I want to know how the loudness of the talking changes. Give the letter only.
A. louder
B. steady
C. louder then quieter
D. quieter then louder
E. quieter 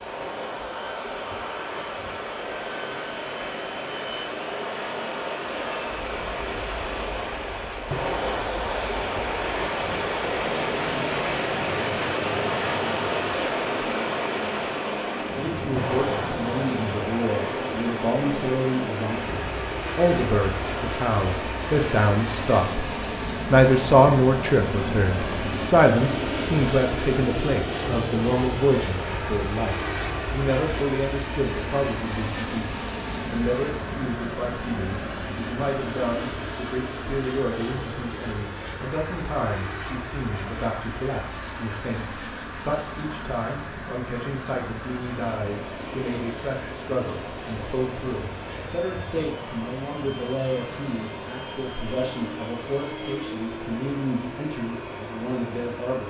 E.